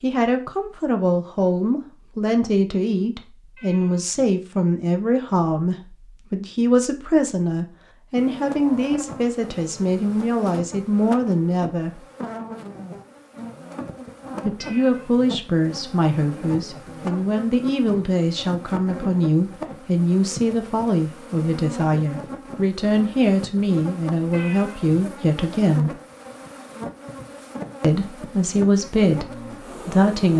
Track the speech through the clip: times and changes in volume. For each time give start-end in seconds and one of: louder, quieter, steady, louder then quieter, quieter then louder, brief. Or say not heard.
0.0-12.0 steady
14.4-25.9 steady
27.8-30.3 brief.